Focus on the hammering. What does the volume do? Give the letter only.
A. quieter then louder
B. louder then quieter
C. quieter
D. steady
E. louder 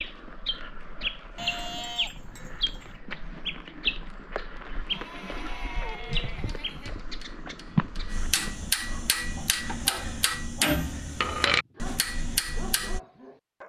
E.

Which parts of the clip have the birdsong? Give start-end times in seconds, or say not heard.
0.0-8.6.